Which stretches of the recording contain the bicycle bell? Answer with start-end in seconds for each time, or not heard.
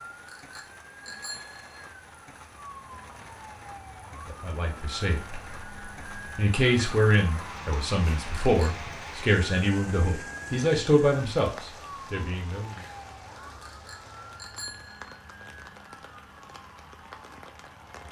0.2-1.8, 8.3-8.8, 13.6-15.2.